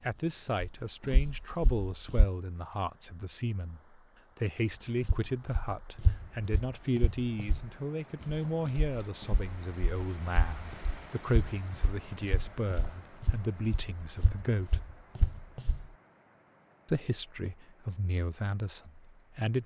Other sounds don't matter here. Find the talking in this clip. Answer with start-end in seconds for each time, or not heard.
0.0-14.8, 16.9-19.6.